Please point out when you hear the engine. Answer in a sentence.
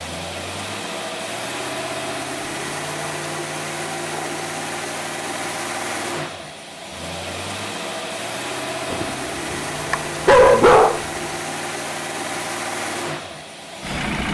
You can hear the engine from 0.0 to 14.3 s.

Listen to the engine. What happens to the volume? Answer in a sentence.
The loudness of the engine stays about the same.